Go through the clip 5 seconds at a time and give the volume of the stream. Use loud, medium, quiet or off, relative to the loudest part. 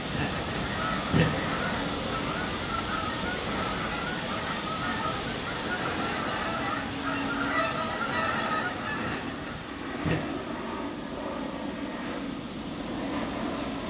loud, loud, medium.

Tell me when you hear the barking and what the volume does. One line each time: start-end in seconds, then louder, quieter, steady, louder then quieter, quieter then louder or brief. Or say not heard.
not heard.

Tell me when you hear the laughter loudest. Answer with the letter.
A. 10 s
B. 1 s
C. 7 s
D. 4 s
B.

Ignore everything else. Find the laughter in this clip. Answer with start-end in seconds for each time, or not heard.
0.1-1.6, 9.0-10.4.